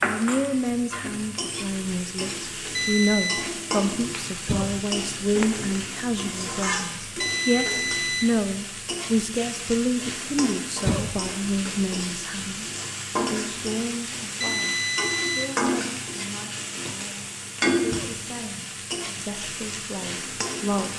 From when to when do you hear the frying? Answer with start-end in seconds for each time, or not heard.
0.0-20.9.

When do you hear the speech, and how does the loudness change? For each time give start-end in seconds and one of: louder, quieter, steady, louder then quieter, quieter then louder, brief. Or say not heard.
0.0-20.9 quieter.